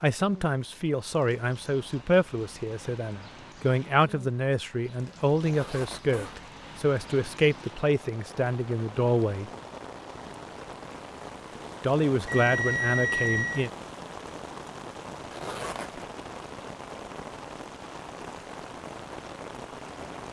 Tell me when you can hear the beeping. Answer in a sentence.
You can hear the beeping from 12.2 to 13.7 s.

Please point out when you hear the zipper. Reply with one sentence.
The zipper can be heard from 5.4 to 6.4 s and from 15.3 to 16.1 s.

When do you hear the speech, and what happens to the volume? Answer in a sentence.
You can hear the speech from 0.0 to 9.5 s, at a steady volume; and briefly from 11.8 to 13.7 s.